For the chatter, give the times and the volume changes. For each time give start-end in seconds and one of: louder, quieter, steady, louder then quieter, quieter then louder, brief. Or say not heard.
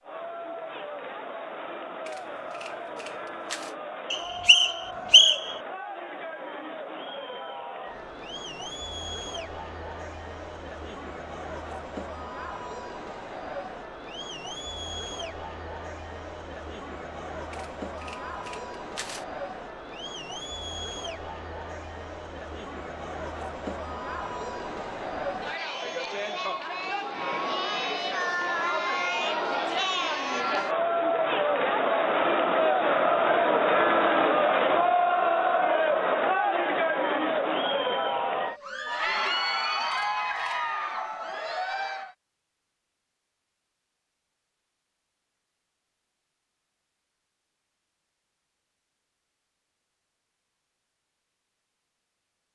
0.0-42.1 louder.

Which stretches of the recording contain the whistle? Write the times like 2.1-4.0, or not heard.
4.1-5.5.